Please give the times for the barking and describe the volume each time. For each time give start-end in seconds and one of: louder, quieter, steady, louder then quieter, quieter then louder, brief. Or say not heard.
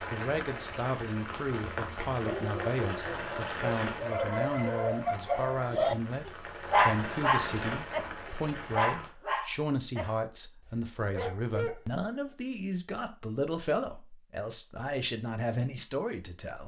2.2-12.1 louder then quieter.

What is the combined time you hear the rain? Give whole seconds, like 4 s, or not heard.
9 s.